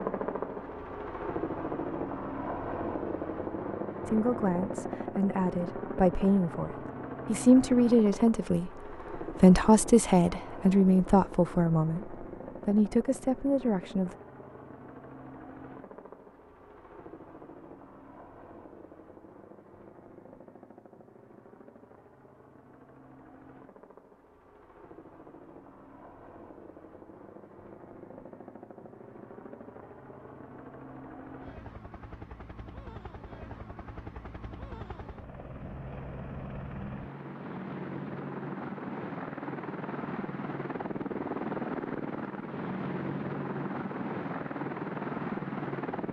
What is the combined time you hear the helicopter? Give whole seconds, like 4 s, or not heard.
46 s.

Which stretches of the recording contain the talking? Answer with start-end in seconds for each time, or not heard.
4.0-14.2.